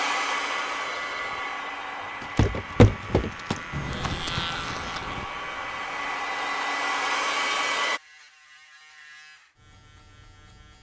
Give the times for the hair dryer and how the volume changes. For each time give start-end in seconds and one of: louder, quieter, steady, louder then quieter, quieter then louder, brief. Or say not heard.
0.0-8.0 quieter then louder.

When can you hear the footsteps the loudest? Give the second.
3 s.